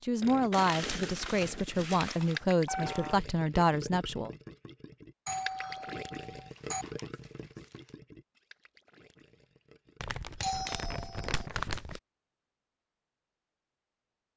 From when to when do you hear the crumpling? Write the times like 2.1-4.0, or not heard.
0.5-2.4, 6.3-8.0, 10.0-12.0.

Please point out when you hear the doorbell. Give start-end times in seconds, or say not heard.
2.2-3.2, 5.2-6.8, 10.4-11.4.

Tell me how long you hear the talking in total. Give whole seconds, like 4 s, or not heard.
4 s.